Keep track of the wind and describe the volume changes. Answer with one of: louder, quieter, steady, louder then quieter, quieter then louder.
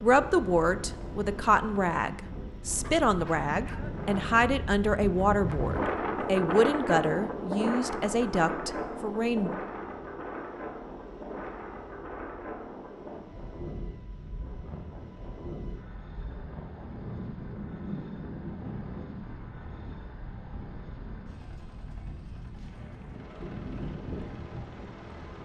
louder then quieter.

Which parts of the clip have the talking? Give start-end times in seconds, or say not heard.
0.0-9.6.